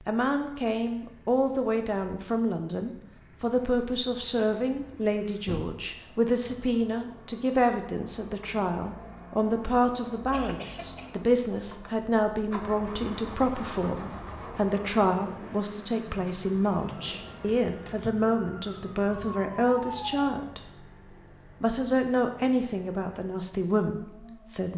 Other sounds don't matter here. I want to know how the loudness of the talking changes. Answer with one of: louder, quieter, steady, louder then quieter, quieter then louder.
steady.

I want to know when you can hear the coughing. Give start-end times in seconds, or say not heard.
10.1-11.1.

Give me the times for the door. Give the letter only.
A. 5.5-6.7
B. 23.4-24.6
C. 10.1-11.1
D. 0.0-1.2
A.